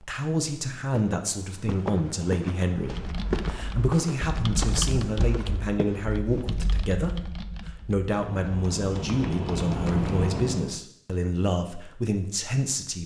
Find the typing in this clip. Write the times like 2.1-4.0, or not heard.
2.8-10.8.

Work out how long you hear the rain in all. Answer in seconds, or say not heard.
not heard.